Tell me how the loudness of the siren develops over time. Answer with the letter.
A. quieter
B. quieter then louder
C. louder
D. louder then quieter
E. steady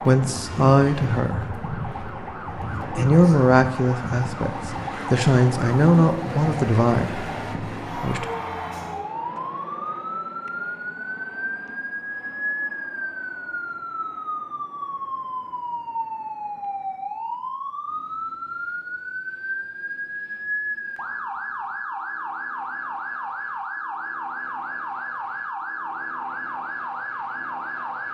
E.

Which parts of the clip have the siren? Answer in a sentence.
You can hear the siren from 0.0 to 28.0 s.